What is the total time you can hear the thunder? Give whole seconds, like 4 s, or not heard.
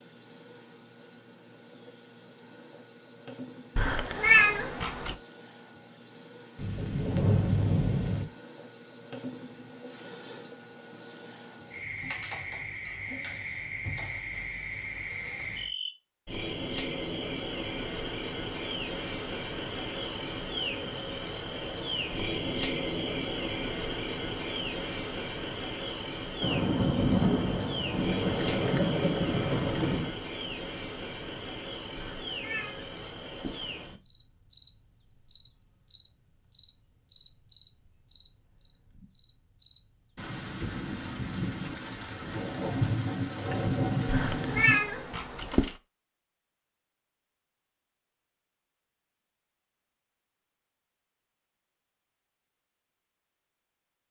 10 s.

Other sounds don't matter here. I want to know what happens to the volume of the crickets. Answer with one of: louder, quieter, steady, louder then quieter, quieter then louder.
louder then quieter.